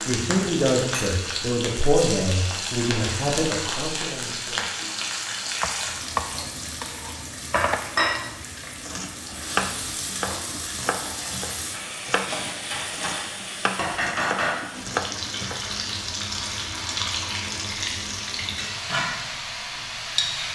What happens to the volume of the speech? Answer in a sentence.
The loudness of the speech goes down.